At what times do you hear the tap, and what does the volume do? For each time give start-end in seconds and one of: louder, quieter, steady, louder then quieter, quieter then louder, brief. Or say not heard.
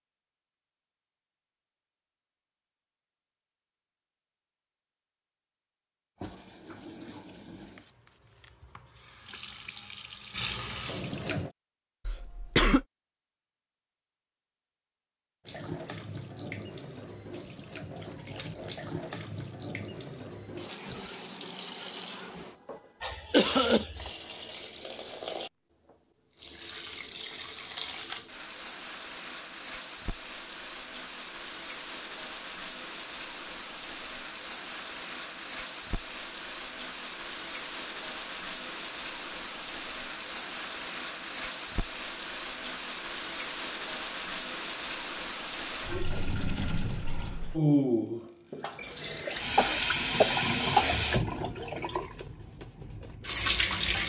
6.2-11.5 quieter then louder
15.4-54.0 louder.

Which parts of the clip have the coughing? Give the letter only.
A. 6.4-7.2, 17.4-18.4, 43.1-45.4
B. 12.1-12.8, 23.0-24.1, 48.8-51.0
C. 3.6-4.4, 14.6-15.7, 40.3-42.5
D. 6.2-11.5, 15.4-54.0
B.